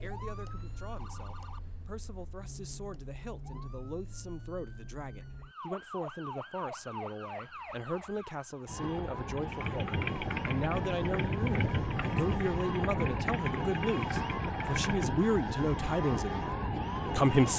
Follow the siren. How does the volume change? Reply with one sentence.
The loudness of the siren goes up.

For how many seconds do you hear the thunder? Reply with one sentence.
The thunder can be heard for 4 seconds in total.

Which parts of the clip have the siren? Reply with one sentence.
The siren can be heard from 0.0 to 17.5 s.